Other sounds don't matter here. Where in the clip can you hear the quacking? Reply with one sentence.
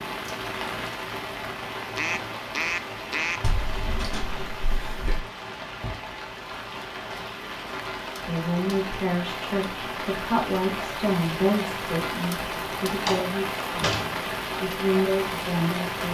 You can hear the quacking from 1.9 to 3.4 s.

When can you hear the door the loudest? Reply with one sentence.
The volume of the door peaks at 13 seconds.